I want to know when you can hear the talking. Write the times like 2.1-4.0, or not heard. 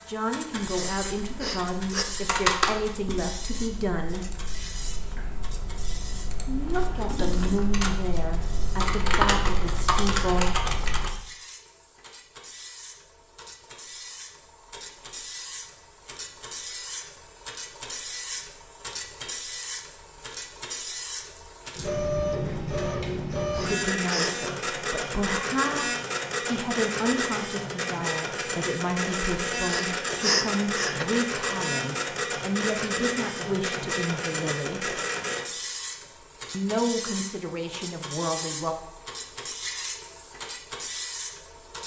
0.1-4.4, 6.5-10.6, 23.6-35.0, 36.5-38.8.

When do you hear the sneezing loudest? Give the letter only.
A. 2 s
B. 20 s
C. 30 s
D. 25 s
C.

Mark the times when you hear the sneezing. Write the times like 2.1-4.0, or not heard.
1.4-2.0, 23.5-24.3, 29.6-31.1.